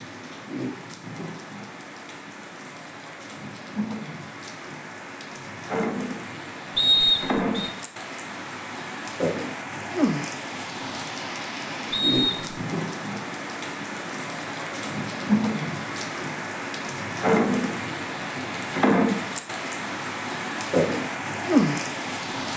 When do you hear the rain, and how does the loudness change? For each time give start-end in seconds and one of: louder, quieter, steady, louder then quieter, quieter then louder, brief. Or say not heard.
0.0-22.5 louder.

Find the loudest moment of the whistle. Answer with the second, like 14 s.
7 s.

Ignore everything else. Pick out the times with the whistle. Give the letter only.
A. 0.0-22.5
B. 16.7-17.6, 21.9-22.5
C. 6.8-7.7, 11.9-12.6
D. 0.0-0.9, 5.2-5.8
C.